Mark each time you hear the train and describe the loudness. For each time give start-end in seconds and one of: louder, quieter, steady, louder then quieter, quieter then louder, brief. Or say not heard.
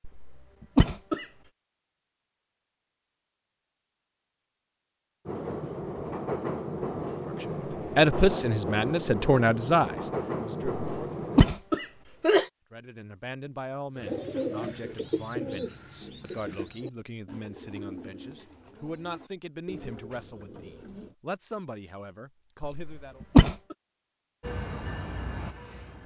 5.2-11.5 steady
24.4-26.0 brief.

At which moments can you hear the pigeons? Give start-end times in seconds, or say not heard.
13.9-21.1.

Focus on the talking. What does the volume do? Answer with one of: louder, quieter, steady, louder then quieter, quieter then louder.
quieter.